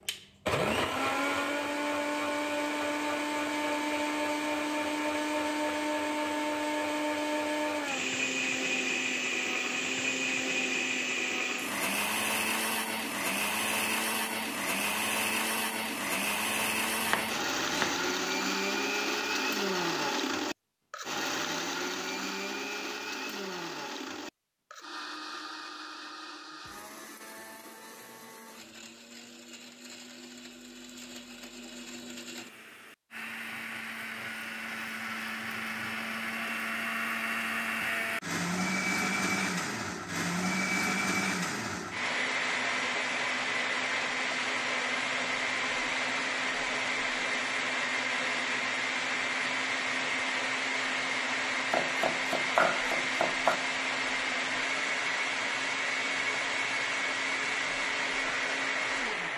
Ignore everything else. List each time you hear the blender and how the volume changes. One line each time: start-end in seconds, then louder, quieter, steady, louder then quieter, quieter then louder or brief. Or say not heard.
0.0-59.3 quieter then louder.